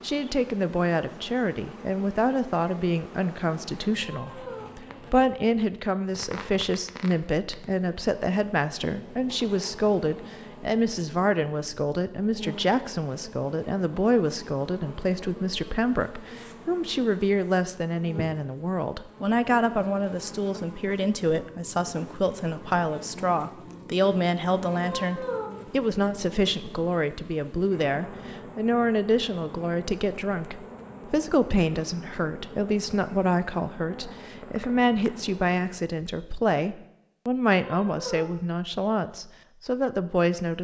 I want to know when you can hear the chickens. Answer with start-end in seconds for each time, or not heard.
not heard.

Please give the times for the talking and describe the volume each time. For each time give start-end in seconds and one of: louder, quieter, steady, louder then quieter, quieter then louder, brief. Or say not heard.
0.0-40.5 steady.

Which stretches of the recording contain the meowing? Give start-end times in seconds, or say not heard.
4.0-4.7, 24.8-25.5, 37.6-38.2.